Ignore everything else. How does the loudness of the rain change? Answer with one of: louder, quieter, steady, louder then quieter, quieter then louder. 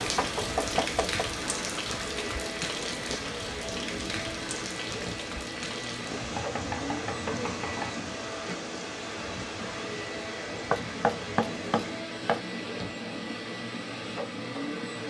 quieter.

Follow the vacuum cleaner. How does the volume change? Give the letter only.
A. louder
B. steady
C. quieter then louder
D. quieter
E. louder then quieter
B.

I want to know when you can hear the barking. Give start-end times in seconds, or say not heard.
not heard.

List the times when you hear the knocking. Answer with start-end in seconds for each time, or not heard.
0.1-1.2, 6.3-7.9, 10.7-12.4.